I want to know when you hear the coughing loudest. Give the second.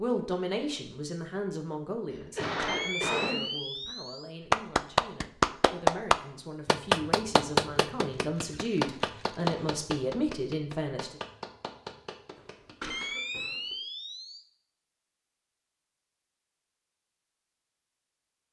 3 s.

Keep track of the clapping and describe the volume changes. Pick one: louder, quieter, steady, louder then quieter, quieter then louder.
quieter.